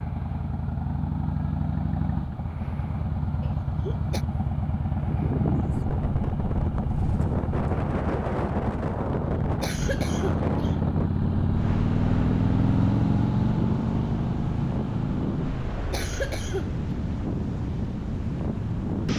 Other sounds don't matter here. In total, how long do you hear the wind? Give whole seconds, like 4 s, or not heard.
14 s.